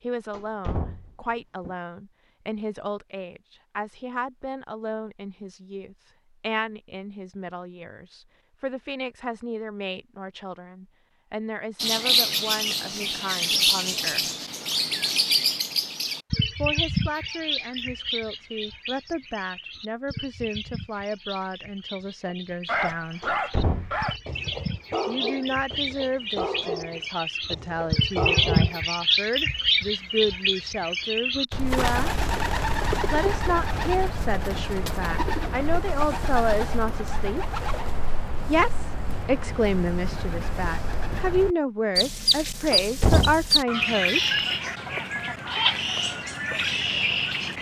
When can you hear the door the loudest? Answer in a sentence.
The loudest moment of the door is at 43 seconds.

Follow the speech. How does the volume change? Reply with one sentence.
The loudness of the speech goes up.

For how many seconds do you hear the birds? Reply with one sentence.
You can hear the birds for 36 seconds altogether.